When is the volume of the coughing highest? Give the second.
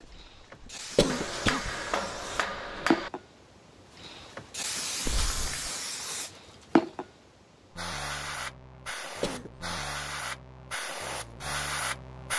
1 s.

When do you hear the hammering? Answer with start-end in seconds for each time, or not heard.
1.1-3.1.